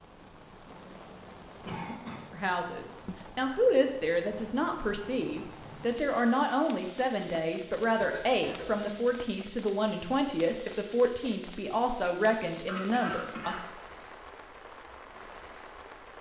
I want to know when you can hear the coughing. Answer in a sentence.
The coughing can be heard from 1.6 to 2.3 s, from 8.0 to 8.9 s and from 12.7 to 14.1 s.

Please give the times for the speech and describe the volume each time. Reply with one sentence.
You can hear the speech from 2.3 to 13.7 s, at a steady volume.